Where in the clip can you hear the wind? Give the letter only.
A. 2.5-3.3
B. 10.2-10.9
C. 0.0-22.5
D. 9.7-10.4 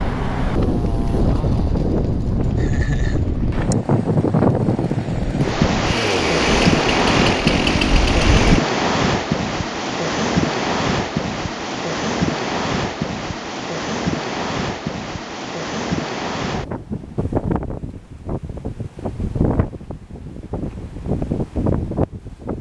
C.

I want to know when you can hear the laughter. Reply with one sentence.
You can hear the laughter from 2.5 to 3.3 s.